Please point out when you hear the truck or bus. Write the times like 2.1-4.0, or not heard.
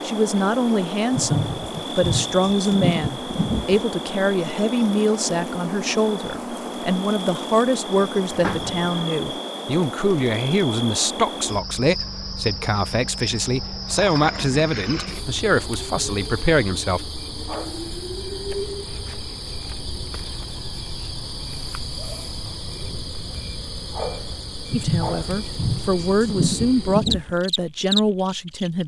not heard.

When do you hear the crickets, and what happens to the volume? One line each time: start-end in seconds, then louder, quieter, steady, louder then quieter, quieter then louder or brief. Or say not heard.
0.0-28.8 steady.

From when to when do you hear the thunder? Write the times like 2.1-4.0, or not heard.
1.1-3.9, 24.6-27.4.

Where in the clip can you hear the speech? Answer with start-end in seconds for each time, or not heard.
0.0-17.0, 24.7-28.8.